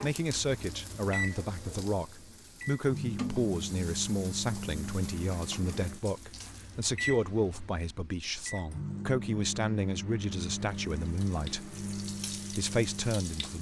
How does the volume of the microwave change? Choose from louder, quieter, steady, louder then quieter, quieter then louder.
steady.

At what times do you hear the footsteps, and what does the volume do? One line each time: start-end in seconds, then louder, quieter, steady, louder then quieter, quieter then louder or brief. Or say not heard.
not heard.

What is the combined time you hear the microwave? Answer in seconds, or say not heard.
13 s.